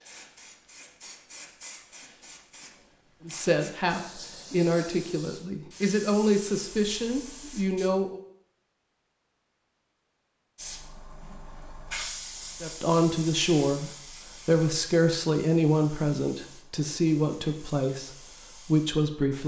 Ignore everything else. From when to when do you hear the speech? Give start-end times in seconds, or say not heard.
3.2-8.2, 12.6-19.4.